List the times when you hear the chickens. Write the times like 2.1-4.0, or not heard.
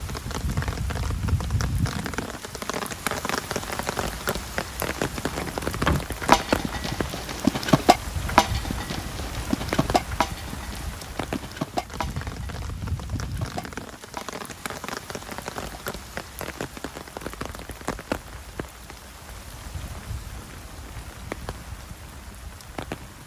not heard.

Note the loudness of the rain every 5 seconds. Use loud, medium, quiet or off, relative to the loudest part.
loud, loud, medium, medium, medium.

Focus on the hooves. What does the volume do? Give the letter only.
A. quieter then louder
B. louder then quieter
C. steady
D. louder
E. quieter
E.